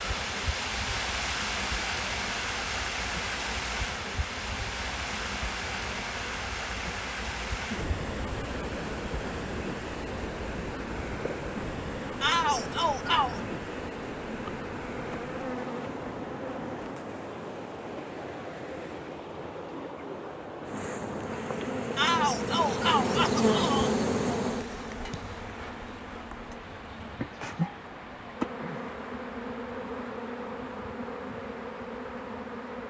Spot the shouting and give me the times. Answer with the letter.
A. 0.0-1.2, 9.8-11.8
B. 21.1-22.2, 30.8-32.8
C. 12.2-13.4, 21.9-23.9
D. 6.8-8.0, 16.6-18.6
C.